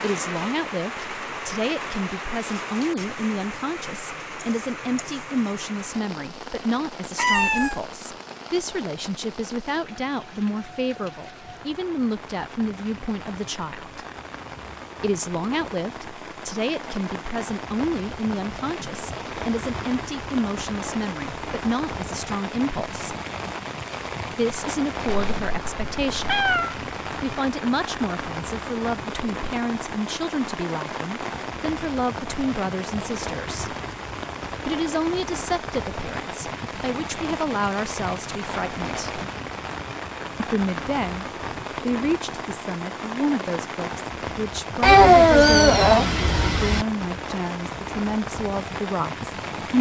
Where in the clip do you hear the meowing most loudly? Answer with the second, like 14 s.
45 s.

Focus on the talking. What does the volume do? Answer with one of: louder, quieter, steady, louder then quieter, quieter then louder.
steady.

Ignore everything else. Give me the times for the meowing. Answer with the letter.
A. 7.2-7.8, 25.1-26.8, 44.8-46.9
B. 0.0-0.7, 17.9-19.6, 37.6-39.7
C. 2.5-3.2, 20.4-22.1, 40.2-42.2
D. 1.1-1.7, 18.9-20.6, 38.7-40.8
A.